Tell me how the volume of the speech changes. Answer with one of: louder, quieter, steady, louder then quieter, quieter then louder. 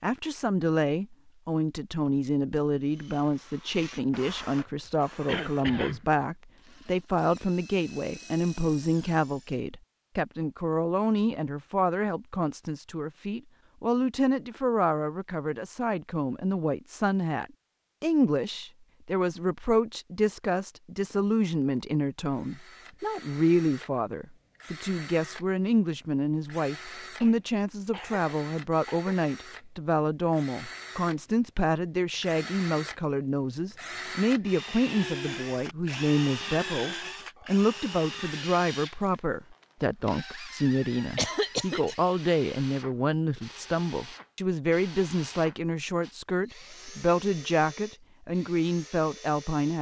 steady.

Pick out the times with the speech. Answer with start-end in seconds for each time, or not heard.
0.0-49.7.